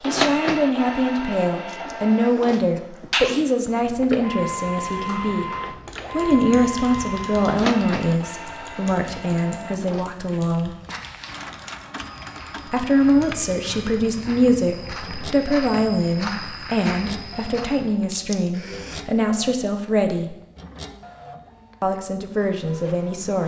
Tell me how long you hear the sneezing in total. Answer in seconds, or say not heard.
3 s.